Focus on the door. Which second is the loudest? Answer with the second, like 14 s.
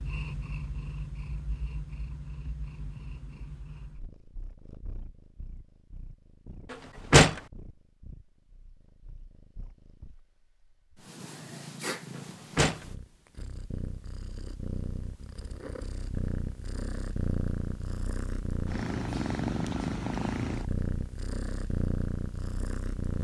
7 s.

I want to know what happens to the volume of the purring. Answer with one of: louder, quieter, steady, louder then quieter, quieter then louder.
quieter then louder.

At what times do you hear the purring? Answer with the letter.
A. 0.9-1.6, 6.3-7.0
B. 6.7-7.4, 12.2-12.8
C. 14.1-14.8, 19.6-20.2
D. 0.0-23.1
D.